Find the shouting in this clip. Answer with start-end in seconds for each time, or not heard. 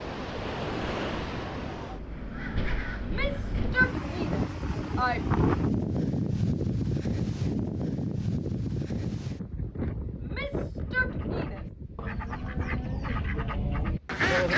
3.0-5.2, 10.2-11.7.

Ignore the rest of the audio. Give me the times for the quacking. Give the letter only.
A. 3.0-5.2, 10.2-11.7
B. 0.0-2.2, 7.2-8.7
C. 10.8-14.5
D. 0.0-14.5
C.